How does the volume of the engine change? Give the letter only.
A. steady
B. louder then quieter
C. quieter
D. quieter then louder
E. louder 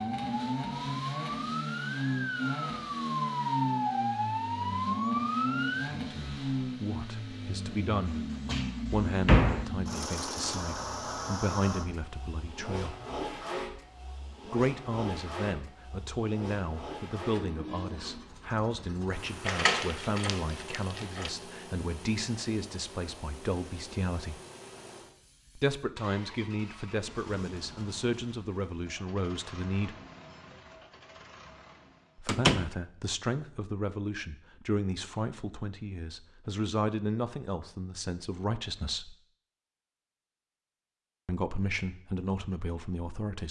C.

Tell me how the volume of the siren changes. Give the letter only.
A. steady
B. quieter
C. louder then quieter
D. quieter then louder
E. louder
E.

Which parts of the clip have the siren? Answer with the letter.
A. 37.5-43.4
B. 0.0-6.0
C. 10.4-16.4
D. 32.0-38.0
B.